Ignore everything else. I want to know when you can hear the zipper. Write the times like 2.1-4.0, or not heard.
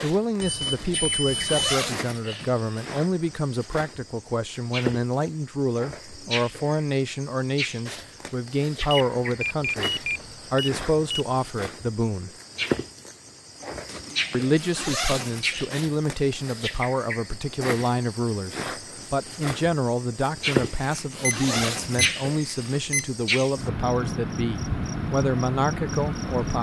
0.6-3.0, 13.8-15.7, 20.4-22.8.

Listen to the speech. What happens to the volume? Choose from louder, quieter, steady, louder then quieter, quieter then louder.
steady.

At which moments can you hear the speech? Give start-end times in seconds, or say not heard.
0.0-12.3, 14.3-26.5.